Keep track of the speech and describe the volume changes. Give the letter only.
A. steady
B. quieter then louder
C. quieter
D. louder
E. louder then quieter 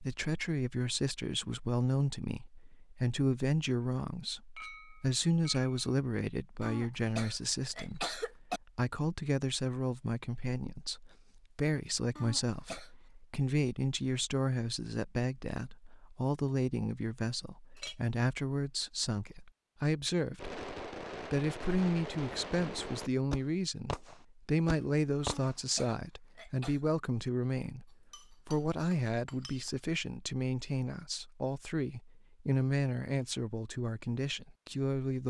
A.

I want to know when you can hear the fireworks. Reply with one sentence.
You can hear the fireworks from 20.4 to 25.6 s.